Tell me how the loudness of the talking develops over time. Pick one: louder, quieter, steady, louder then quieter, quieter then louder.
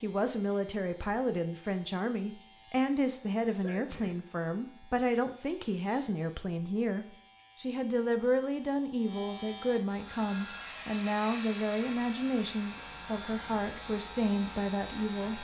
steady.